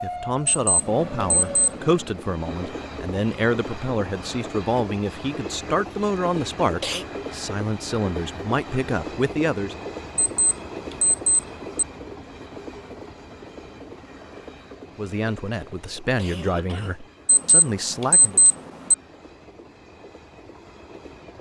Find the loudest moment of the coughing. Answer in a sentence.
The volume of the coughing peaks at 7 seconds.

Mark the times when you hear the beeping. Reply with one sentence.
You can hear the beeping from 0.5 to 1.7 s, from 10.2 to 11.8 s and from 17.2 to 18.9 s.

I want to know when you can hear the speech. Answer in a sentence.
The speech can be heard from 0.0 to 9.8 s and from 14.9 to 18.4 s.